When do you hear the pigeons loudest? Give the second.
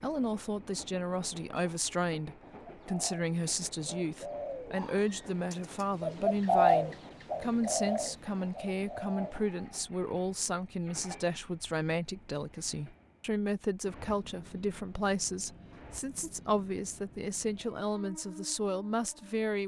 7 s.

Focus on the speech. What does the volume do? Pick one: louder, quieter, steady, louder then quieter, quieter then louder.
steady.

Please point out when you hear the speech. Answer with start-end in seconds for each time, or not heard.
0.0-19.6.